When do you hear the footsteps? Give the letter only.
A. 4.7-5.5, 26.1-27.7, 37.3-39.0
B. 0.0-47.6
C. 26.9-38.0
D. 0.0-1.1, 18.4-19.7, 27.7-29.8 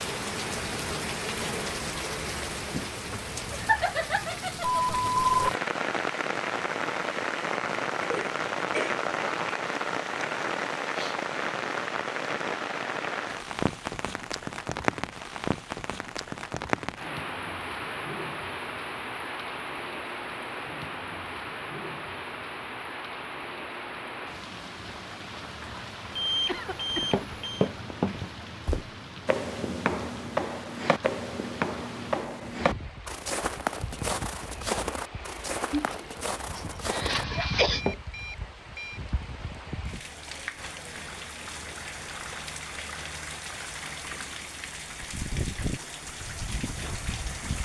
C.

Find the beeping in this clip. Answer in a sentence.
You can hear the beeping from 4.7 to 5.5 s, from 26.1 to 27.7 s and from 37.3 to 39.0 s.